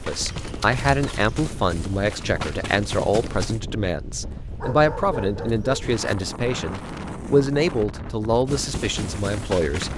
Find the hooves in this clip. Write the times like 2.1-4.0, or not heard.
0.0-3.6, 8.4-9.9.